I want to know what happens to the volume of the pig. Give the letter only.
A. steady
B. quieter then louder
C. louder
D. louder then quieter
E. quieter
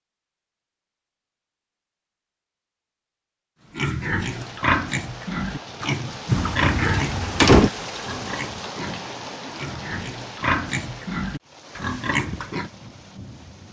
B.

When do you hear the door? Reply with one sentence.
You can hear the door from 6.3 to 7.7 s.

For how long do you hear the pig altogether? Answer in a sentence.
You can hear the pig for 9 seconds altogether.